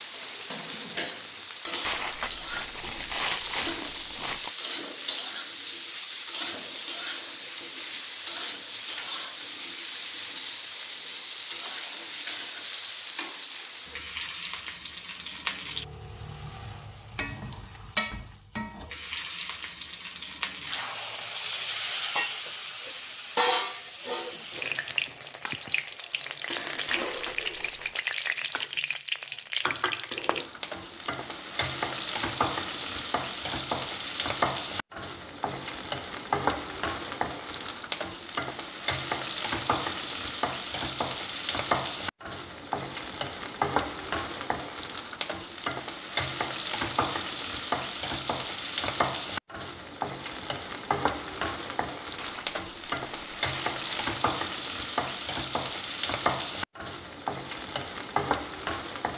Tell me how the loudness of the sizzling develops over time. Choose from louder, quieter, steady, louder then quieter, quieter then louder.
steady.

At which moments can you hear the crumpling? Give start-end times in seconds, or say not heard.
1.9-4.5, 26.9-28.0, 52.1-54.1.